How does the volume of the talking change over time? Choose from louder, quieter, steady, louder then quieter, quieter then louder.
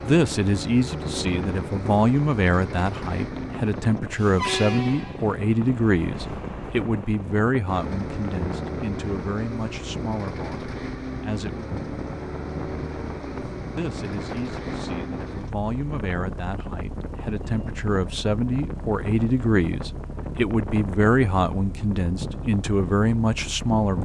quieter then louder.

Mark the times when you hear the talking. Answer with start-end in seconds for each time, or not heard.
0.0-11.7, 13.8-24.0.